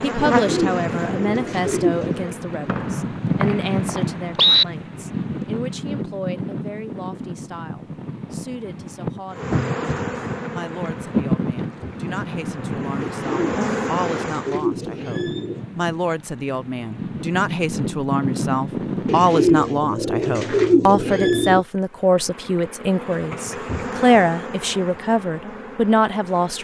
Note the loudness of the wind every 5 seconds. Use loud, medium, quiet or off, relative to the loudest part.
loud, loud, loud, loud, off, off.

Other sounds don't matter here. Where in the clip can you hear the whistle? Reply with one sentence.
The whistle can be heard from 2.6 to 4.7 s.